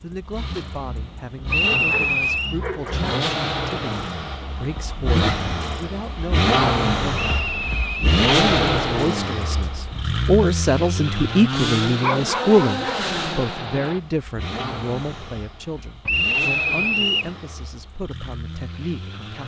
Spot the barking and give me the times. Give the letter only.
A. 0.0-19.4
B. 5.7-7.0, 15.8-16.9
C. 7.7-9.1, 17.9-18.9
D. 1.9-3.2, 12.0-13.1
D.